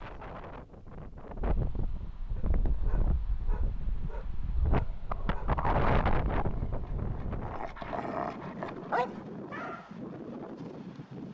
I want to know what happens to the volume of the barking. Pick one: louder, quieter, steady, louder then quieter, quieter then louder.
louder.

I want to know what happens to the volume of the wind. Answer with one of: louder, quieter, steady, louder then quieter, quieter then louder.
louder then quieter.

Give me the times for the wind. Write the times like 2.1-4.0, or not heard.
0.0-11.3.